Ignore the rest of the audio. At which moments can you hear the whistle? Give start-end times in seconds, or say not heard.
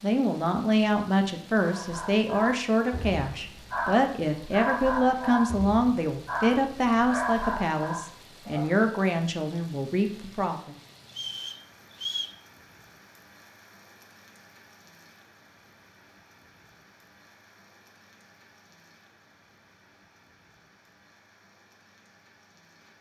11.1-12.4.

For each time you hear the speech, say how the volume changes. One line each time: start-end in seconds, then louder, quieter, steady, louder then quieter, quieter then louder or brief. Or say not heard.
0.0-10.8 steady.